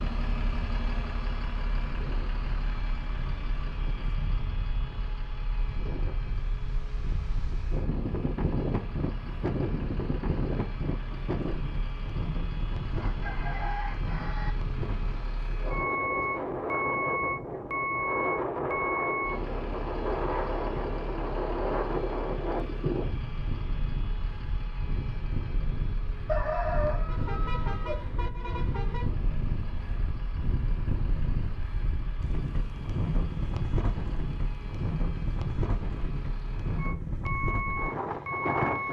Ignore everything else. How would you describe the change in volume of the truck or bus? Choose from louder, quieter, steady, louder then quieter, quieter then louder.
louder then quieter.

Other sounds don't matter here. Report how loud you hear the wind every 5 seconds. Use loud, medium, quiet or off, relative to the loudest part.
medium, loud, loud, loud, loud, medium, loud, loud.